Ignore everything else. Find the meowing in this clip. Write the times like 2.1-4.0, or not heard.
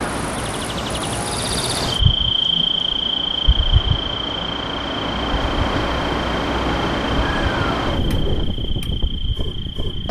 6.7-8.6.